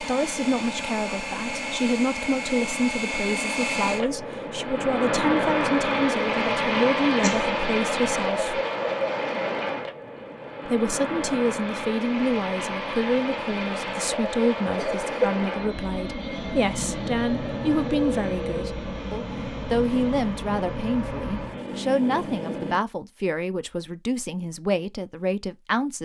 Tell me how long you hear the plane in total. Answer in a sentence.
You can hear the plane for 23 seconds altogether.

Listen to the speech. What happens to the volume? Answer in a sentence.
The volume of the speech stays about the same.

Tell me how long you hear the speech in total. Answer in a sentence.
You can hear the speech for 24 seconds altogether.